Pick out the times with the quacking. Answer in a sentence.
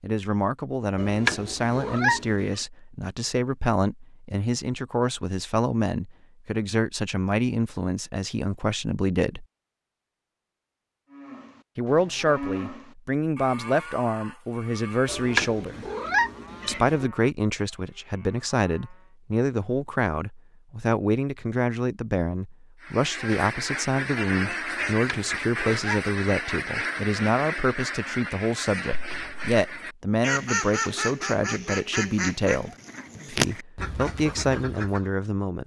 You can hear the quacking from 22.8 to 35.1 s.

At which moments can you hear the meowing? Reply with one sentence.
The meowing can be heard from 0.9 to 2.6 s, from 15.1 to 17.1 s and from 25.1 to 26.1 s.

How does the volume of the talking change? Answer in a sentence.
The loudness of the talking stays about the same.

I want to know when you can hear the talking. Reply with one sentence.
The talking can be heard from 0.0 to 9.4 s, from 11.8 to 15.8 s and from 16.6 to 35.6 s.